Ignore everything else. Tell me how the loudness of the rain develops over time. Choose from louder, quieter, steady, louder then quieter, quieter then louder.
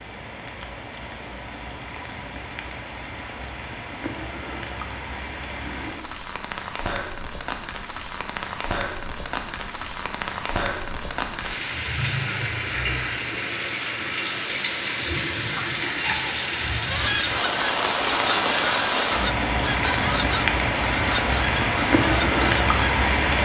louder.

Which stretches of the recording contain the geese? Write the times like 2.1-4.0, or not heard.
16.9-22.9.